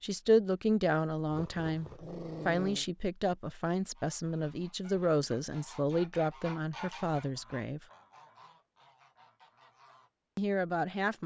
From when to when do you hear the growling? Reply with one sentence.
You can hear the growling from 1.3 to 2.9 s.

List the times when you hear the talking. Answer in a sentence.
You can hear the talking from 0.0 to 7.8 s and from 10.3 to 11.2 s.